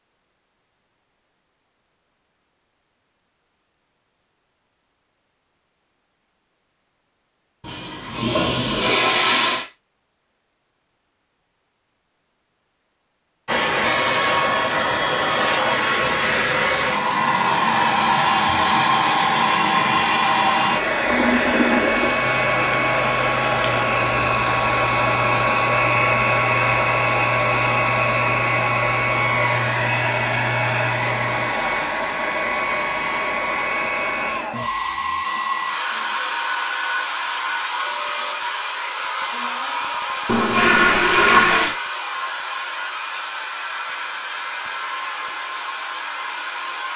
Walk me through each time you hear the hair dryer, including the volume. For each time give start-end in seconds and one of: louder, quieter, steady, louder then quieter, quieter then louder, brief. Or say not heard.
13.4-46.9 quieter.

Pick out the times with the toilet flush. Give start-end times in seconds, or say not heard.
7.7-9.7, 21.1-22.1, 40.2-41.8.